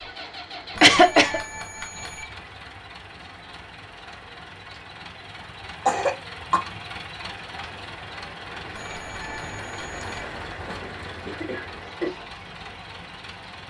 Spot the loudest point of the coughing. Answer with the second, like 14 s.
1 s.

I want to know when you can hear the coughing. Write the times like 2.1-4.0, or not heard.
0.8-1.4, 5.8-6.6, 10.8-12.1.